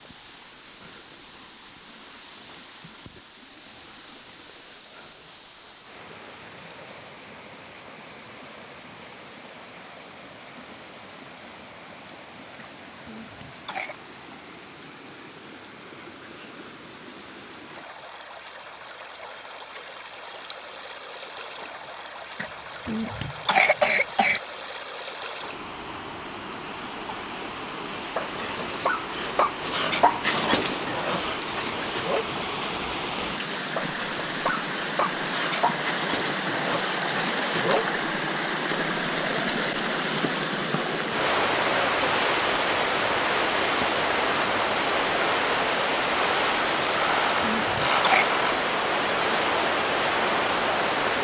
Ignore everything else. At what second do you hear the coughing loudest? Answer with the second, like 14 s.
24 s.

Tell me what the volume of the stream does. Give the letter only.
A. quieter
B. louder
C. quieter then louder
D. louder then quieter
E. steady
B.